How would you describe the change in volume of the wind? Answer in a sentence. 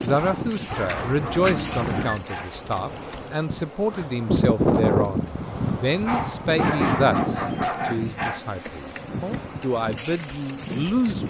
The loudness of the wind goes up, then down.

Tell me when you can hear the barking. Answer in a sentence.
The barking can be heard from 0.1 to 2.6 s and from 6.0 to 8.4 s.